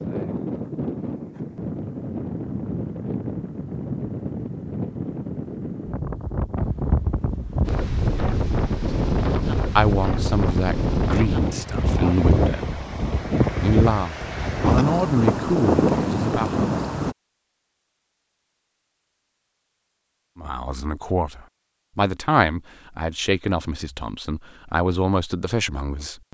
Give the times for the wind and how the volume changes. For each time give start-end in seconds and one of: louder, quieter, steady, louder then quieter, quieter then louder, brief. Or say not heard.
0.0-17.1 louder.